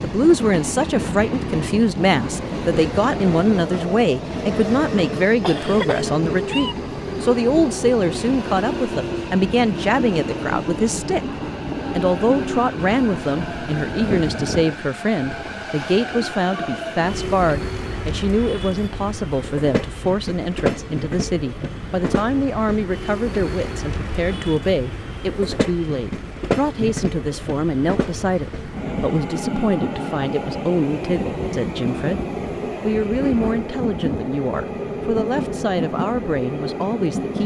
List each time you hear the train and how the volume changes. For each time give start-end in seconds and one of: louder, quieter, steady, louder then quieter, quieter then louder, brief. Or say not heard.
0.0-37.4 steady.